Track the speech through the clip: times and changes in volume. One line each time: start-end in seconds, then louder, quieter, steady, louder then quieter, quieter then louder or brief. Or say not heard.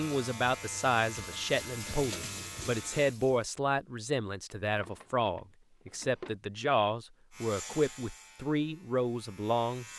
0.0-9.8 steady.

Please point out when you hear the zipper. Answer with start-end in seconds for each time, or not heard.
not heard.